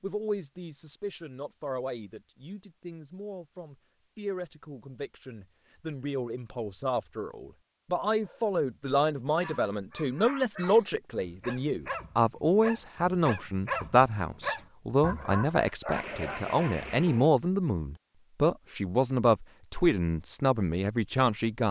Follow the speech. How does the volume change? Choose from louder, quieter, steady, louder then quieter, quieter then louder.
louder.